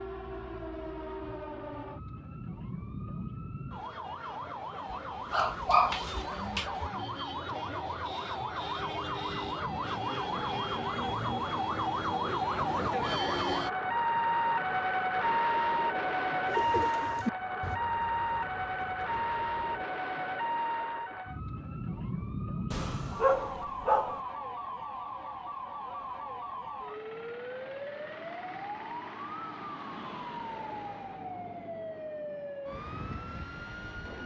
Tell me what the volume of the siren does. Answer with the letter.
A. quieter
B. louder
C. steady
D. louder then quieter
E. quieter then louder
D.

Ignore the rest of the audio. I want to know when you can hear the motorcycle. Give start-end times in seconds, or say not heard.
not heard.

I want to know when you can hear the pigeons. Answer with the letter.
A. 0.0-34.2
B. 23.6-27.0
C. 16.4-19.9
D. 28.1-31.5
C.